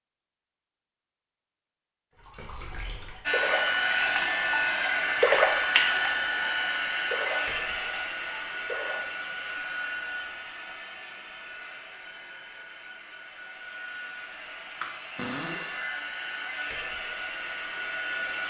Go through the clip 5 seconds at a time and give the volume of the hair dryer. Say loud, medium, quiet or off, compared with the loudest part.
loud, loud, quiet, medium.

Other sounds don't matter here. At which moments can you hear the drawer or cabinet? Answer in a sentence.
You can hear the drawer or cabinet from 15.2 to 15.8 s.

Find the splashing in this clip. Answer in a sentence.
You can hear the splashing from 2.1 to 4.6 s and from 5.2 to 9.2 s.